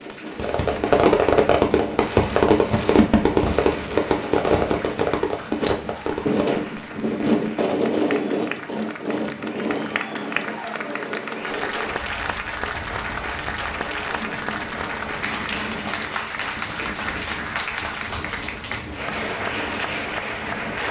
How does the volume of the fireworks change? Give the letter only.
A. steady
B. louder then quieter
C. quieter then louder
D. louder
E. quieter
E.